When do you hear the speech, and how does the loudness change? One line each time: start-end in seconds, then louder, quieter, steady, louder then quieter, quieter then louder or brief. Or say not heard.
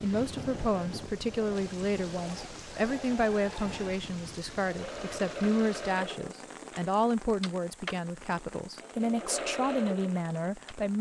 0.0-10.9 steady.